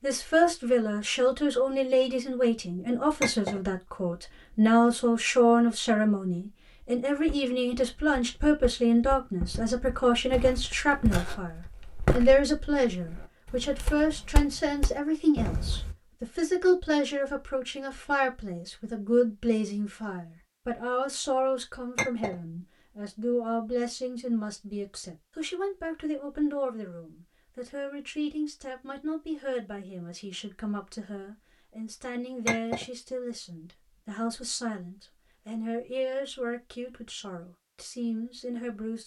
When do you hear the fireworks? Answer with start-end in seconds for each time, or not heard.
not heard.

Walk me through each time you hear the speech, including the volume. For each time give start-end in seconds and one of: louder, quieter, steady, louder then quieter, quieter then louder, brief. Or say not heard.
0.0-39.0 quieter.